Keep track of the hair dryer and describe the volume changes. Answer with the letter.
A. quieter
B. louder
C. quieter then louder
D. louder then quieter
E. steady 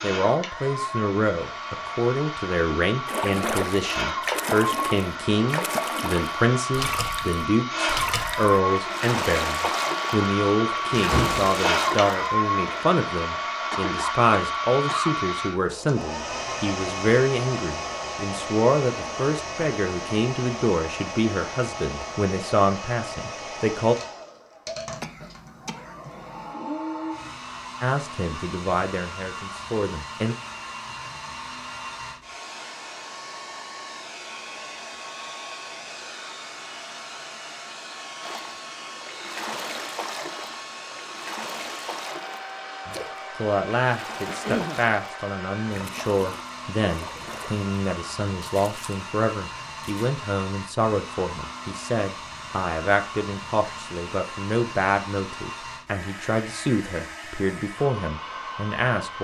A.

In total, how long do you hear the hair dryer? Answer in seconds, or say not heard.
59 s.